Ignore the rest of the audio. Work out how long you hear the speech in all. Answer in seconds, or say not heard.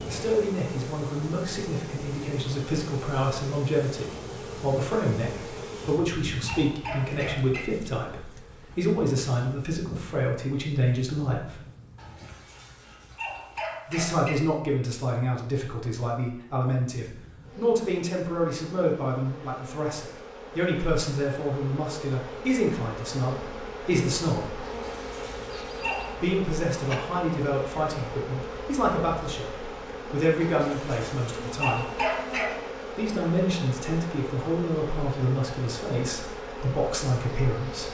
33 s.